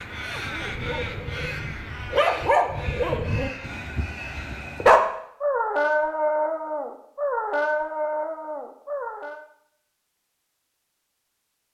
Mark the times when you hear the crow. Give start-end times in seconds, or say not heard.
0.0-4.9.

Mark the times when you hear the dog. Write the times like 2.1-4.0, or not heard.
0.2-9.4.